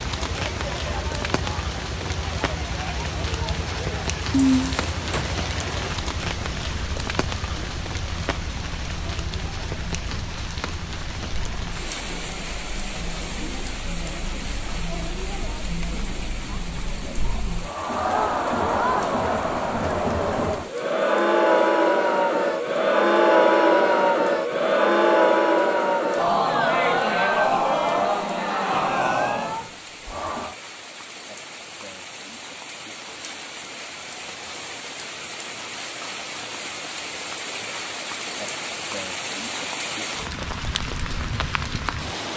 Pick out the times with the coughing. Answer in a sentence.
The coughing can be heard from 4.3 to 5.3 s.